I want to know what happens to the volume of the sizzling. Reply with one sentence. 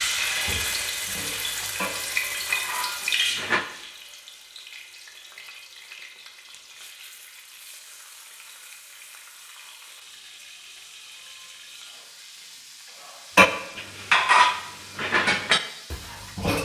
The volume of the sizzling goes down.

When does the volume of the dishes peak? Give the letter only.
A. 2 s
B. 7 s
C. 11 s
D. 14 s
D.